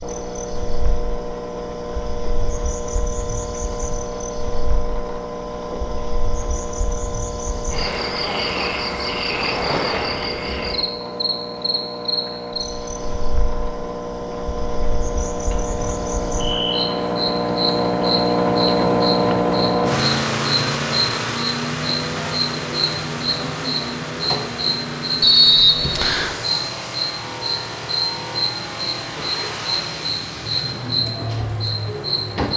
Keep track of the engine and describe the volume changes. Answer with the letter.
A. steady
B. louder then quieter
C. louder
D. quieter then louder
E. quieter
B.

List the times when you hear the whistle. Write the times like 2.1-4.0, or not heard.
25.2-26.4.